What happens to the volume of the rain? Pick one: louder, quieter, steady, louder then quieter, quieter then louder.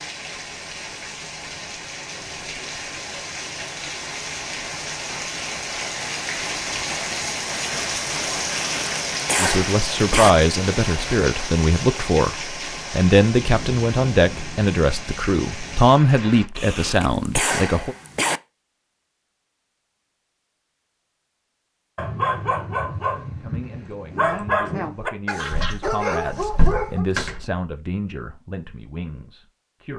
louder then quieter.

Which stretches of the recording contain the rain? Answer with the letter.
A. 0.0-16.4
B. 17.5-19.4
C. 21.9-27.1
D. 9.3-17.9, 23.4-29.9
A.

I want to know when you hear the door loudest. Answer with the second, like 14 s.
27 s.